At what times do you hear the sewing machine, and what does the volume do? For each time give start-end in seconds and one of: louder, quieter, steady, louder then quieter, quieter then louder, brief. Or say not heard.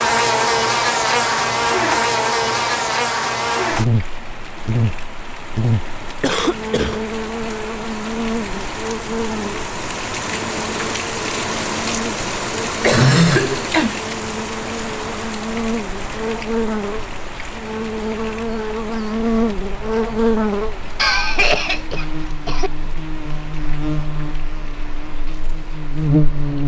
not heard.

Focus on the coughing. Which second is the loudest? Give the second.
13 s.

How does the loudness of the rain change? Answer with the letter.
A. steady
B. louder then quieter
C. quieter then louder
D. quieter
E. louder
B.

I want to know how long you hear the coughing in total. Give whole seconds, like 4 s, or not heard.
4 s.